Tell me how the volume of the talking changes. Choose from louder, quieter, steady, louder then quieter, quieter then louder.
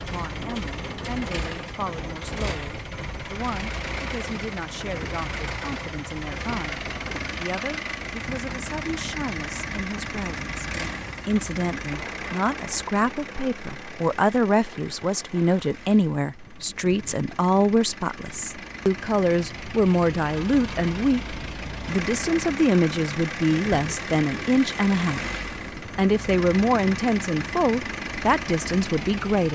louder.